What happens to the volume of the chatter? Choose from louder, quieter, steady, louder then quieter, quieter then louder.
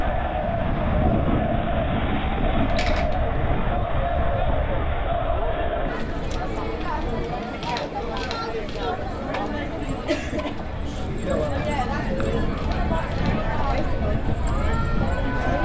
steady.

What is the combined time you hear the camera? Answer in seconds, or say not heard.
3 s.